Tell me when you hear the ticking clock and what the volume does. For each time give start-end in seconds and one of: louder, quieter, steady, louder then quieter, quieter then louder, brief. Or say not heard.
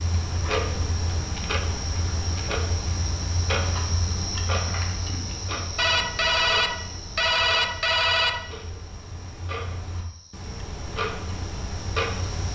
0.0-12.5 quieter then louder.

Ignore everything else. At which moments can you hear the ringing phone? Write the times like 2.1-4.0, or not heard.
5.8-8.4.